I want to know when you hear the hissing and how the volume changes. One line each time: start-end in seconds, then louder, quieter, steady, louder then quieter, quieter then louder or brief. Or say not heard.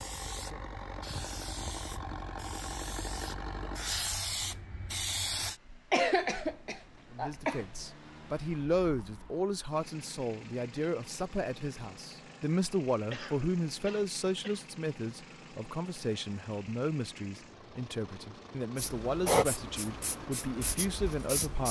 0.0-5.6 louder
18.8-21.6 brief.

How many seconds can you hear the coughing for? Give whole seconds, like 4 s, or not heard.
3 s.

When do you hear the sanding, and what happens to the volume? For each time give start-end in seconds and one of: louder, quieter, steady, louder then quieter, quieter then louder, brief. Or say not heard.
not heard.